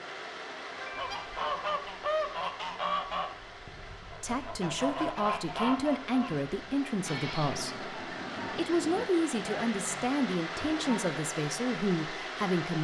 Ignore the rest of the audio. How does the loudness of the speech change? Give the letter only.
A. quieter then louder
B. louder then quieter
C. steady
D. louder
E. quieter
C.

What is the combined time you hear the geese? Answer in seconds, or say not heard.
10 s.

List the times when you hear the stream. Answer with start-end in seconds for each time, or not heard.
0.0-12.7.